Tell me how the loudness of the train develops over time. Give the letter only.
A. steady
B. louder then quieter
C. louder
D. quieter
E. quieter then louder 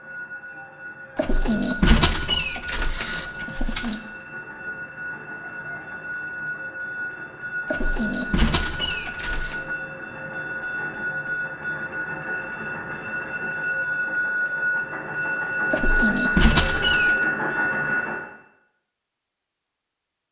C.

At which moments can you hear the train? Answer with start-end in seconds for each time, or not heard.
0.0-18.2.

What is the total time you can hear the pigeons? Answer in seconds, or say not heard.
6 s.